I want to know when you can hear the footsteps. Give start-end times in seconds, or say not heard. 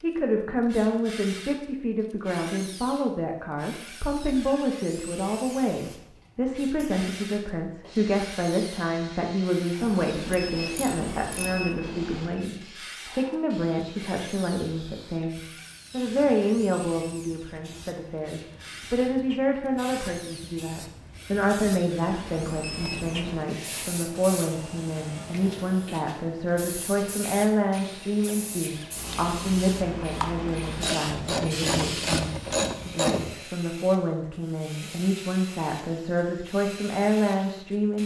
not heard.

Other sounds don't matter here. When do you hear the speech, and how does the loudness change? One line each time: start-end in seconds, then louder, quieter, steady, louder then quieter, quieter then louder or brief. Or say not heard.
0.0-38.0 steady.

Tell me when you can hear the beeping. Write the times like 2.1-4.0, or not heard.
9.8-12.4, 22.1-23.4.